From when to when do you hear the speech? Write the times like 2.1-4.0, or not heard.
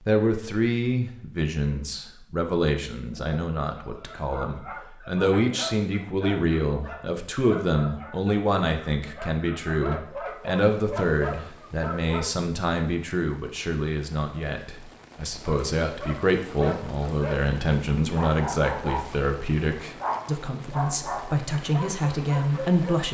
0.1-23.0.